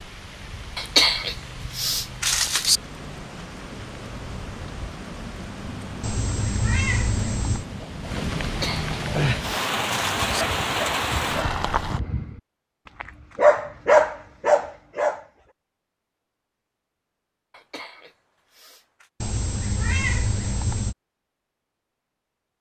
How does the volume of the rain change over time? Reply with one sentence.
The volume of the rain goes up.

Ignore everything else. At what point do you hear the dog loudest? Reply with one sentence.
The loudest moment of the dog is at 14 seconds.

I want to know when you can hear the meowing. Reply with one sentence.
The meowing can be heard from 6.0 to 7.7 s and from 19.2 to 20.9 s.